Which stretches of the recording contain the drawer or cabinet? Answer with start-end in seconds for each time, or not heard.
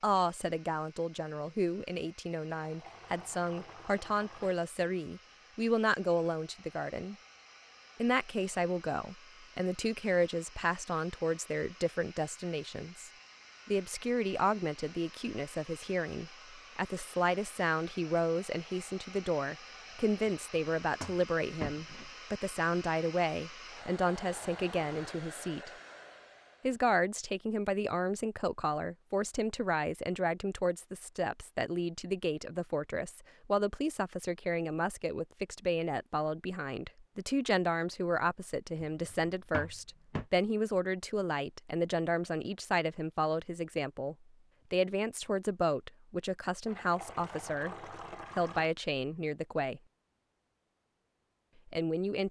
20.2-22.1, 38.8-40.2.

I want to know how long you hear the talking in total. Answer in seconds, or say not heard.
48 s.